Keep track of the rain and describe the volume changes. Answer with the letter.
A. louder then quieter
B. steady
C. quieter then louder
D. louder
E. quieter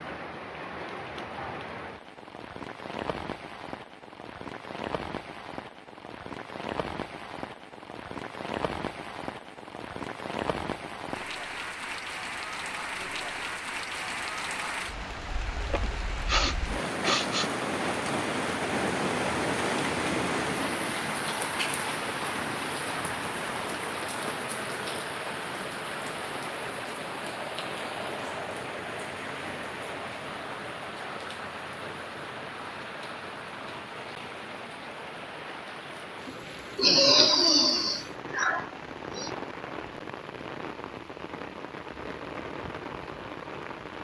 A.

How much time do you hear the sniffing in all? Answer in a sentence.
The sniffing can be heard for 4 seconds in total.